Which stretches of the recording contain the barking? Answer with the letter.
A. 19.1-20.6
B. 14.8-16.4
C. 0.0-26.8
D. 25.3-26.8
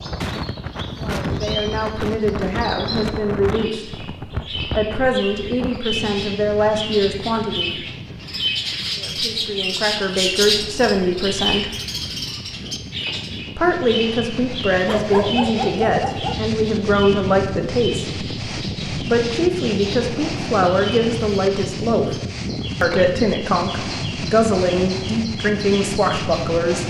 B.